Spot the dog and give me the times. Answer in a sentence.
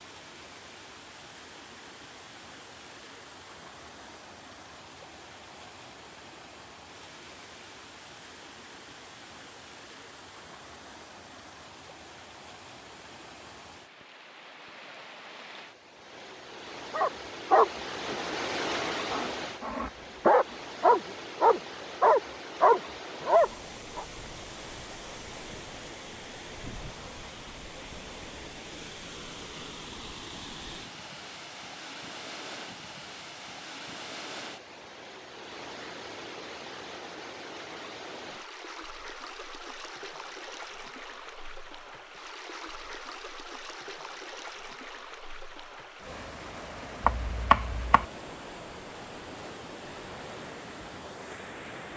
You can hear the dog from 16.9 to 24.1 s.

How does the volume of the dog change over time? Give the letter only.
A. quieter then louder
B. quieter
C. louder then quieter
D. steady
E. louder
A.